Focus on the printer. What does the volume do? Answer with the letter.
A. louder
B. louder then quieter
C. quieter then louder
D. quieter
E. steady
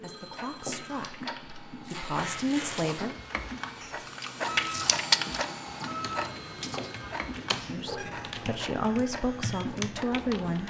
B.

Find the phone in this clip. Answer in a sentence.
The phone can be heard from 0.0 to 1.2 s and from 6.2 to 7.2 s.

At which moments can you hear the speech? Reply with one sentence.
The speech can be heard from 0.0 to 3.1 s and from 7.7 to 10.6 s.